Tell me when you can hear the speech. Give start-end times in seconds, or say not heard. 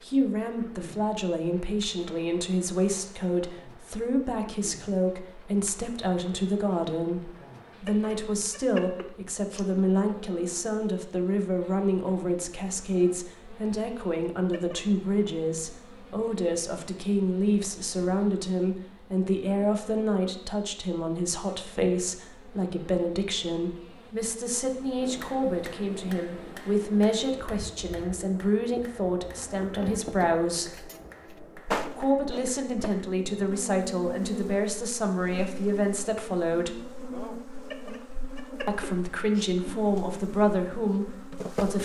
0.0-30.9, 31.9-36.9, 38.6-41.8.